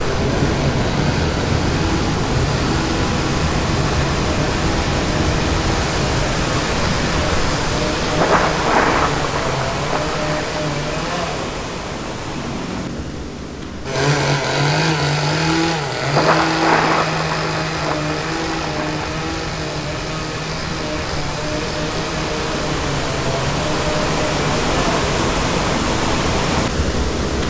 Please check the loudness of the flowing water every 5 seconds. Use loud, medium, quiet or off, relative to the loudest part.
loud, loud, medium, quiet, loud, loud.